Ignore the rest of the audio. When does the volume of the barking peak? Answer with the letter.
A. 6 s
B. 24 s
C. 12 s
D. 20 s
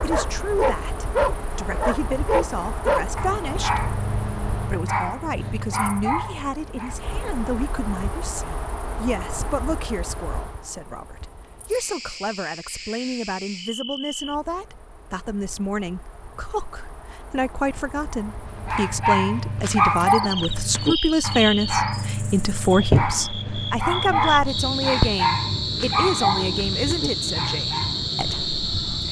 D.